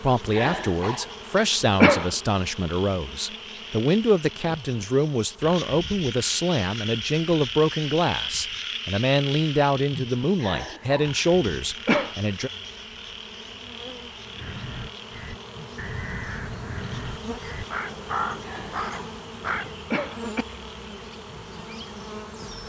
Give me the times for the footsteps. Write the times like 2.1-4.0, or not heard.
not heard.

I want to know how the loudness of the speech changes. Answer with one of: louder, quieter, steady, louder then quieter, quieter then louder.
steady.